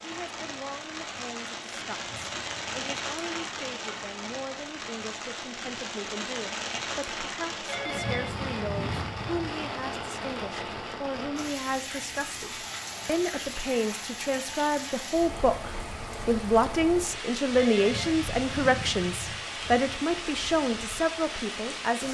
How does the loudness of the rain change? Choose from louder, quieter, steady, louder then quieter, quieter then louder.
steady.